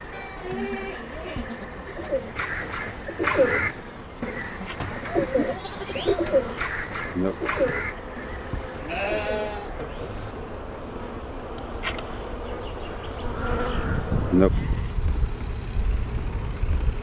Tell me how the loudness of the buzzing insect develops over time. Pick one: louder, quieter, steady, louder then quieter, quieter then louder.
louder.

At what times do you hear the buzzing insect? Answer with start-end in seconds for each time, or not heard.
0.0-16.9.